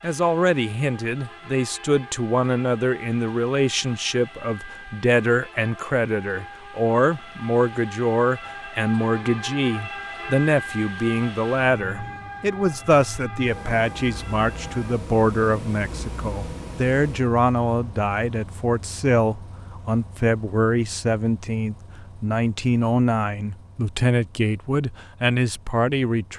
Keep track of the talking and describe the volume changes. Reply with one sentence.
The loudness of the talking stays about the same.